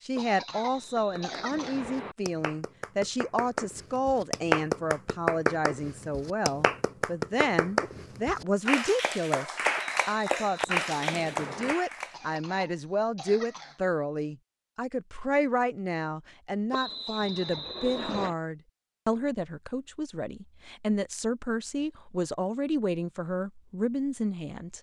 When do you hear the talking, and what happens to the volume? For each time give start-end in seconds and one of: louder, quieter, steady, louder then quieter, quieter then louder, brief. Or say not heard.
0.0-24.7 steady.